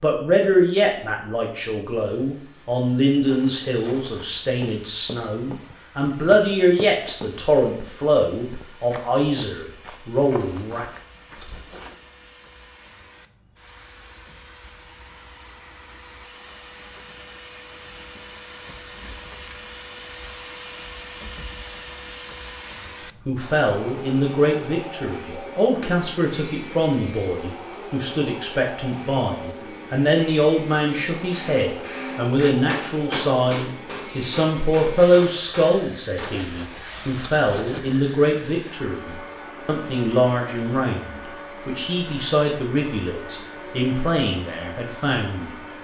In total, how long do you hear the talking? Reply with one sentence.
The talking can be heard for 33 seconds in total.